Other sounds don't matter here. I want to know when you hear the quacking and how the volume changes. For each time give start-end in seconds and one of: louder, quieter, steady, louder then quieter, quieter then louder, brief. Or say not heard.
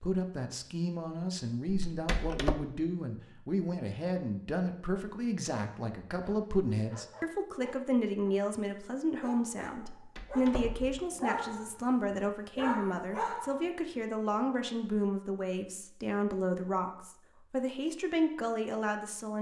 not heard.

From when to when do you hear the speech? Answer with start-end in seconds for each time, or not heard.
0.0-19.3.